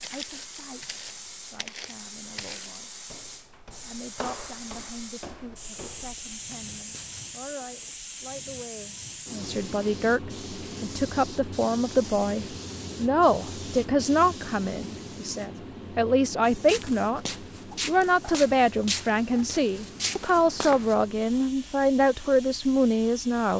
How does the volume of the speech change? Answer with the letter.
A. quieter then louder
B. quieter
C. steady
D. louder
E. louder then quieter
D.